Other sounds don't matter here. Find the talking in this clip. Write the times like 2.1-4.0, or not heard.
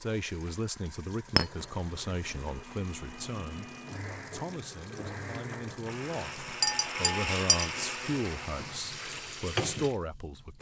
0.0-10.5.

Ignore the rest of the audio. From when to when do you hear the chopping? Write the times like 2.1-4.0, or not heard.
not heard.